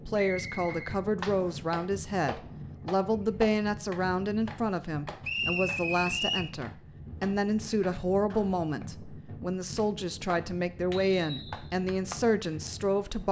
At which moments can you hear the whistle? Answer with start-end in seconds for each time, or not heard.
0.1-1.6, 5.2-6.5, 10.9-11.8.